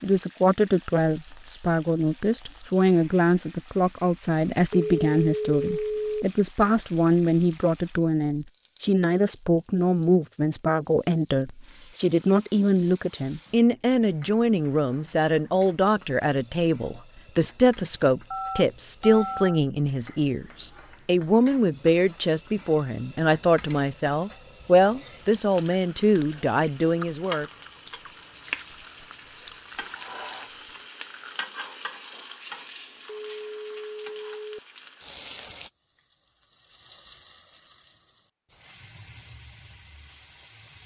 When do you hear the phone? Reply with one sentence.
The phone can be heard from 4.7 to 6.2 s, from 18.3 to 19.6 s and from 33.0 to 34.6 s.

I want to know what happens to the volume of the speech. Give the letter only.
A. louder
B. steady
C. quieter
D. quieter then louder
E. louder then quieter
B.